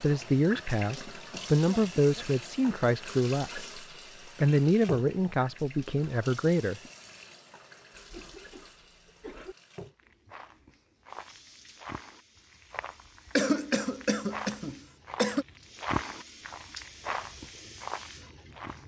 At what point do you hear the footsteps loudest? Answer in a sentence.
The loudest moment of the footsteps is at 16 seconds.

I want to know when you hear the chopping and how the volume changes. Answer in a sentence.
You can't hear the chopping here.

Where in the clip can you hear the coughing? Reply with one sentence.
The coughing can be heard from 0.9 to 3.0 s, from 8.0 to 9.6 s and from 13.3 to 15.4 s.